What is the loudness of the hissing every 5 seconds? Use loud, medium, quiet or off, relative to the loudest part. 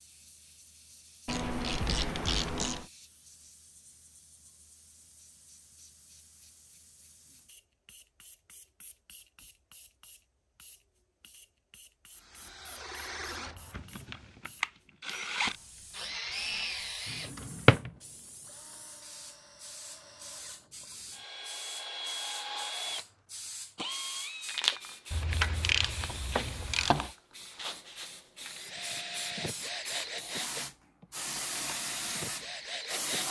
quiet, quiet, quiet, quiet, loud, medium, loud.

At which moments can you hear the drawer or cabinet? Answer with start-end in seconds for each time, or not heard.
17.1-17.9.